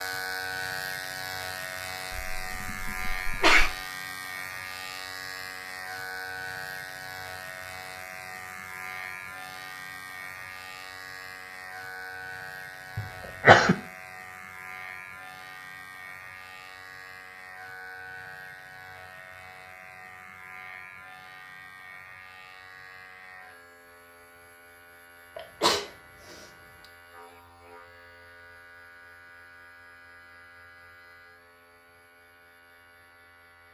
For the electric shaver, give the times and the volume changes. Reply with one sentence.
You can hear the electric shaver from 0.0 to 33.7 s, getting quieter.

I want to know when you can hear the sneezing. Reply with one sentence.
You can hear the sneezing from 2.1 to 3.7 s, from 12.9 to 13.8 s and from 25.4 to 26.4 s.